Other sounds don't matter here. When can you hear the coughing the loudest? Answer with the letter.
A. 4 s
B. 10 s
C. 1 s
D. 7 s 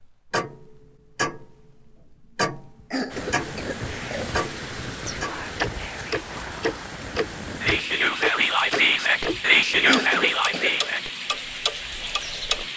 B.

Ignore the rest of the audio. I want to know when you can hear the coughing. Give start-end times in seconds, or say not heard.
2.9-4.3, 9.8-10.8.